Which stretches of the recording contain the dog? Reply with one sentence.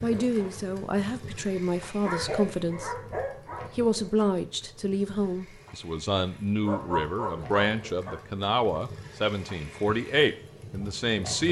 You can hear the dog from 2.0 to 3.7 s and from 6.6 to 8.2 s.